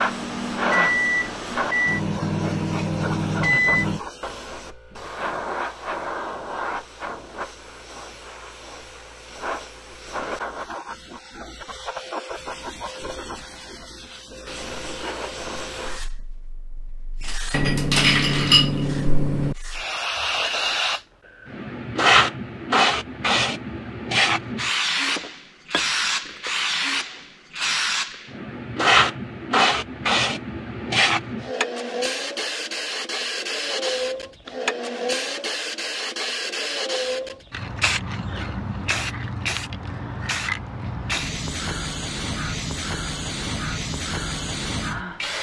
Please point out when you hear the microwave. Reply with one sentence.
You can hear the microwave from 0.0 to 4.0 s.